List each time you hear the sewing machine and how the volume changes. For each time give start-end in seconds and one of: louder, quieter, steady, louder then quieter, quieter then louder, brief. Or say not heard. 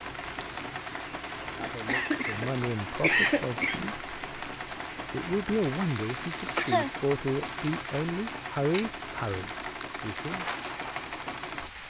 0.0-11.8 steady.